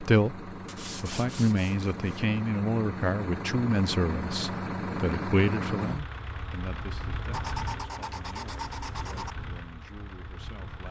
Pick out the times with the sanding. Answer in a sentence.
You can hear the sanding from 0.7 to 2.1 s and from 7.3 to 9.3 s.